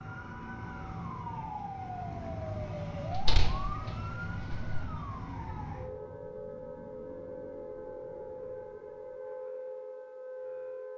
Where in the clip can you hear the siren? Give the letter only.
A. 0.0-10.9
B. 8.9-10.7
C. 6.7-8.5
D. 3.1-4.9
A.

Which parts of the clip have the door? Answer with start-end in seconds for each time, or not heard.
3.1-4.9.